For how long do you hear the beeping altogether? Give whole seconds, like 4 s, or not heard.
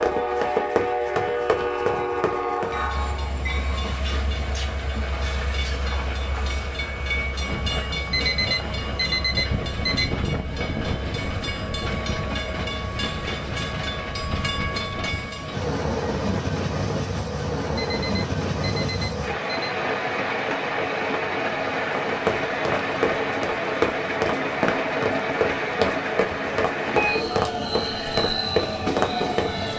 4 s.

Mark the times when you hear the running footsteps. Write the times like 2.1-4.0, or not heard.
0.0-2.8, 21.9-29.7.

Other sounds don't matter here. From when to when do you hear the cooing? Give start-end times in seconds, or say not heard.
not heard.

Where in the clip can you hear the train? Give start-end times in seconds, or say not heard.
0.0-29.7.